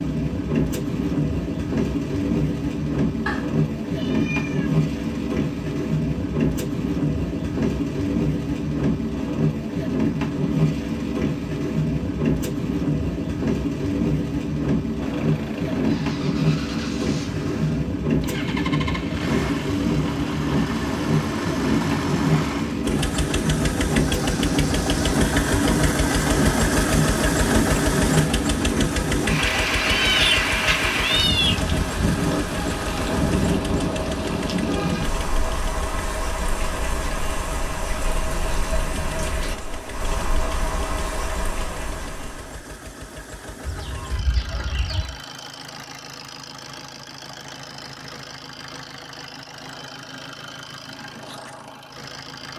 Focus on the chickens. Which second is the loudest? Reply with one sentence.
The loudest moment of the chickens is at 45 seconds.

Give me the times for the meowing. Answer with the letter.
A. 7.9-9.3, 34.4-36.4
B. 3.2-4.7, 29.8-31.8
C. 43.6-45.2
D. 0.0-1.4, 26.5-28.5
B.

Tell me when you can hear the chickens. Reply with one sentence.
The chickens can be heard from 43.6 to 45.2 s.